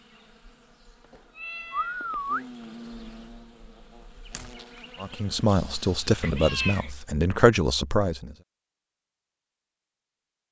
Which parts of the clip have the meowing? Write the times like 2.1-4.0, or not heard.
1.1-2.5, 6.2-6.9.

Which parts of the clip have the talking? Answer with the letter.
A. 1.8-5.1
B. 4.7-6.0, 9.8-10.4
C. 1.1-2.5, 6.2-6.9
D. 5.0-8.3
D.